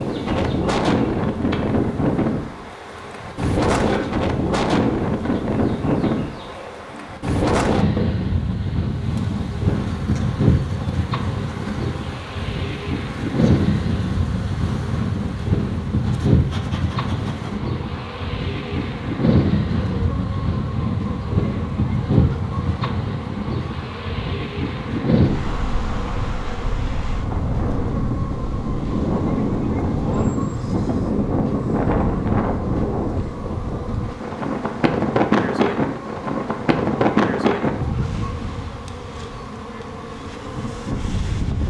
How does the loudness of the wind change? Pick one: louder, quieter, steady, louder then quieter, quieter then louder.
steady.